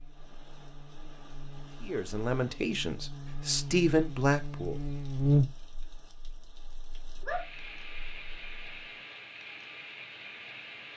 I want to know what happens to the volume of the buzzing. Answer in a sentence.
The volume of the buzzing goes up, then down.